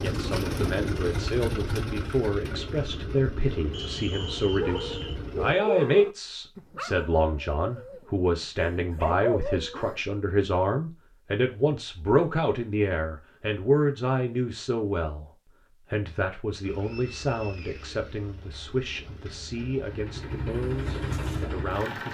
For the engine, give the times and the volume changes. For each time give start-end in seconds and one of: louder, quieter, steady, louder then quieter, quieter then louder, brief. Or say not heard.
0.0-5.5 quieter
16.6-22.0 louder.